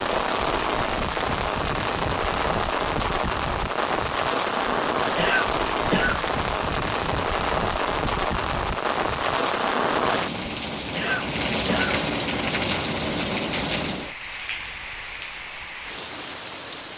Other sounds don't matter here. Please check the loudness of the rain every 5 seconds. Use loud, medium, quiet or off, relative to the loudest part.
loud, loud, loud, medium.